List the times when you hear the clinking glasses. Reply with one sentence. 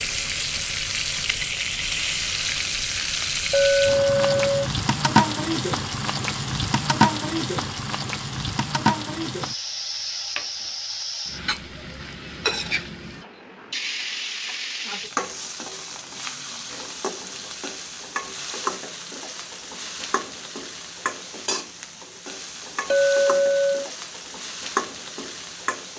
The clinking glasses can be heard from 3.5 to 4.7 s and from 22.9 to 23.9 s.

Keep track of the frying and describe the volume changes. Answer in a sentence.
The volume of the frying goes down.